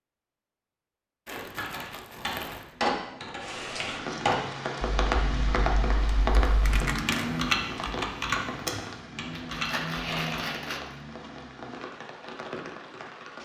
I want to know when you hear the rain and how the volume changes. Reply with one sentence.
The rain can be heard from 3.4 to 13.3 s, getting quieter.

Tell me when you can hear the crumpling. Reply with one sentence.
The crumpling can be heard from 1.2 to 2.7 s, from 6.6 to 7.2 s and from 9.3 to 10.9 s.